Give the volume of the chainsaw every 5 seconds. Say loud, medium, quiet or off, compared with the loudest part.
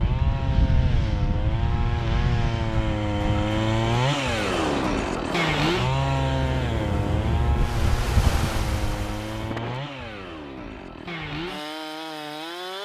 loud, loud, medium.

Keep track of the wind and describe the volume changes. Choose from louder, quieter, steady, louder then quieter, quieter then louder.
steady.